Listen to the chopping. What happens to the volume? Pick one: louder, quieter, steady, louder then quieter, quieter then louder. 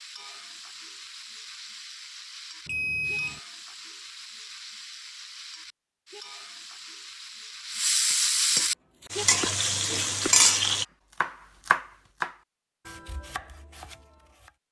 louder then quieter.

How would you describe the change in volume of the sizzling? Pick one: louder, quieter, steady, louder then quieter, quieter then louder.
louder.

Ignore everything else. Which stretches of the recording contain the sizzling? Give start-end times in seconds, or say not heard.
0.0-10.8.